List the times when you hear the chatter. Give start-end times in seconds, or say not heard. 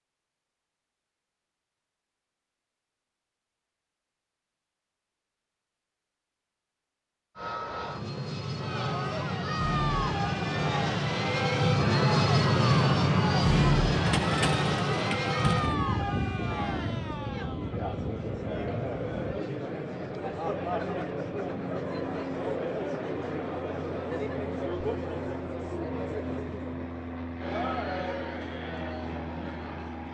8.5-30.0.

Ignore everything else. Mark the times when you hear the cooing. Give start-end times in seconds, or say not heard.
14.1-15.8.